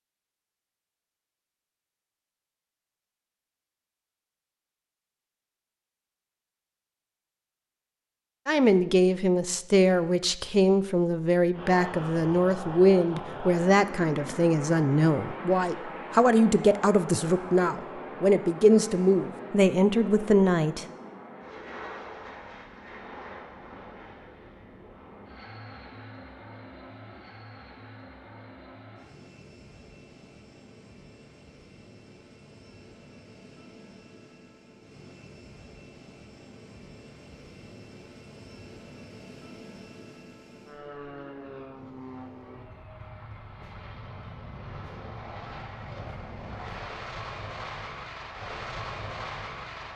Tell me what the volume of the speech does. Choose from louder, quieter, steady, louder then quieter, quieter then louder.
steady.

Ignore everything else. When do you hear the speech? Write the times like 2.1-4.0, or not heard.
8.4-20.9.